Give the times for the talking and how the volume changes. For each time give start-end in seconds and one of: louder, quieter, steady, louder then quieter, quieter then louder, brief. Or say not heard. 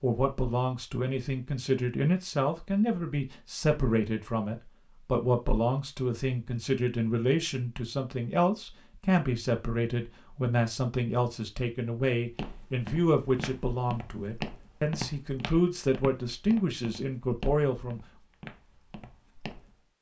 0.0-18.0 steady.